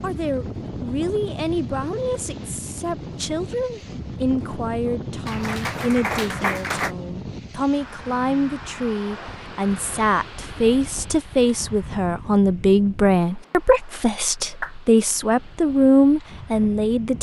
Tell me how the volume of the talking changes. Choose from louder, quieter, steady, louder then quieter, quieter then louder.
louder.